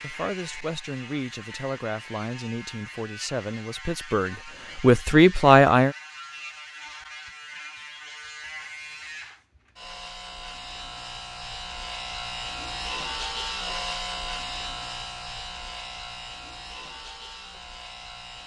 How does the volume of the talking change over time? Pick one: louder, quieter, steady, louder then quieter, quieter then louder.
louder.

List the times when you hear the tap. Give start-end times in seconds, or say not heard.
not heard.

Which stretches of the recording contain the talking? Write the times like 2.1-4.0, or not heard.
0.0-6.0.